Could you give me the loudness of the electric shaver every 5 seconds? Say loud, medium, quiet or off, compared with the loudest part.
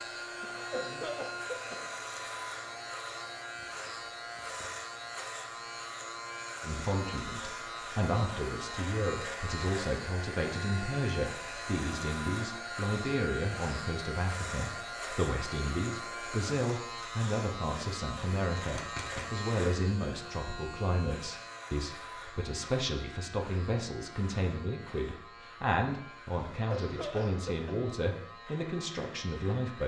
loud, loud, loud, loud, medium, medium.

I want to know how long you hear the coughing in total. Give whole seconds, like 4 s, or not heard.
3 s.